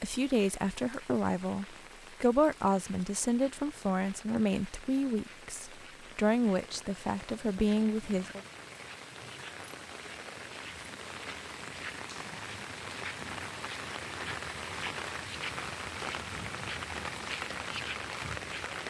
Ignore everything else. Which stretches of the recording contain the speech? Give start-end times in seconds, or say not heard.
0.0-8.4.